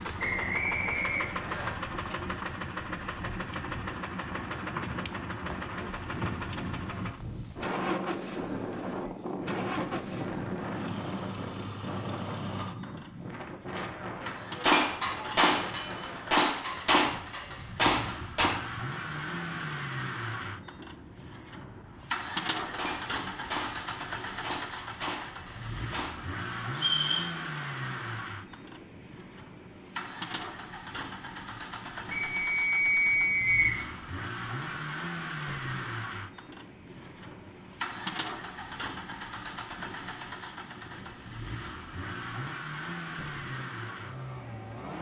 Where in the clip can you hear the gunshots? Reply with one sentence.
The gunshots can be heard from 14.6 to 18.5 s and from 22.6 to 26.1 s.